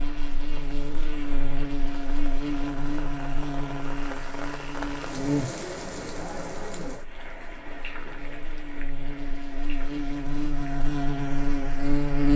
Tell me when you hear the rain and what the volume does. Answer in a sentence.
The rain can be heard from 0.0 to 12.1 s, getting louder then quieter.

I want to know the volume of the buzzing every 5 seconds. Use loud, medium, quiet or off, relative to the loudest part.
medium, medium, loud.